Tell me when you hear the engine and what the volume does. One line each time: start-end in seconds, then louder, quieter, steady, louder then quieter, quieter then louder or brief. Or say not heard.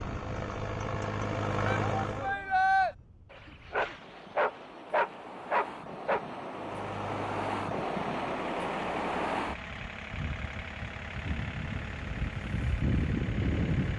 0.0-2.4 brief
6.5-13.9 steady.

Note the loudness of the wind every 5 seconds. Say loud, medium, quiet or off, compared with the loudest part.
quiet, loud, loud.